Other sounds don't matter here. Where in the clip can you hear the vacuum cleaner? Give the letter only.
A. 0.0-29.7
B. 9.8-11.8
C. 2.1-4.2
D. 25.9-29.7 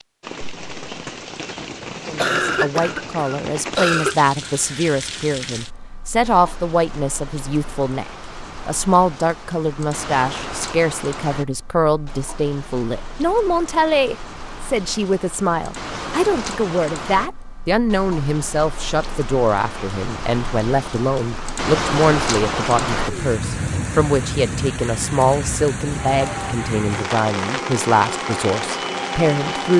D.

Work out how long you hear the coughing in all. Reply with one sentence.
The coughing can be heard for 2 seconds in total.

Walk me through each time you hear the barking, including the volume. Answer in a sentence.
The barking can't be heard in this clip.